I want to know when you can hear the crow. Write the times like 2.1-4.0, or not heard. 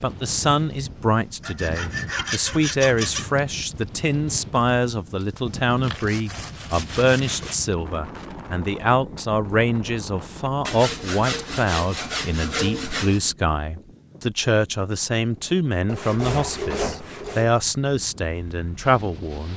not heard.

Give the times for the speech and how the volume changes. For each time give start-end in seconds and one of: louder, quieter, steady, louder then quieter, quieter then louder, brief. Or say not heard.
0.0-19.5 steady.